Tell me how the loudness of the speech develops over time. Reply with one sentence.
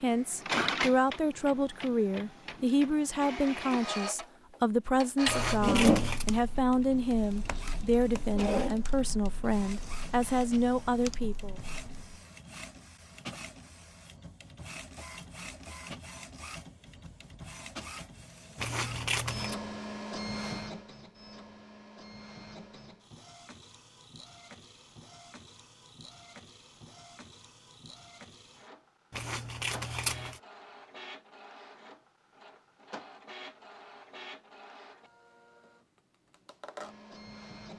The loudness of the speech stays about the same.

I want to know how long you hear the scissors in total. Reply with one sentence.
The scissors can be heard for 3 seconds in total.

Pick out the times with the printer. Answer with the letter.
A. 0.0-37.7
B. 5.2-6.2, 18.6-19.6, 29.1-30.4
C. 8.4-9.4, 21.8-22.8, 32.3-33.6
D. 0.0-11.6
A.